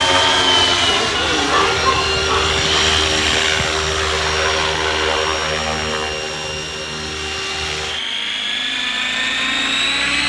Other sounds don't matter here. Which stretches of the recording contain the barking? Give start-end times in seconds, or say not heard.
1.3-2.5.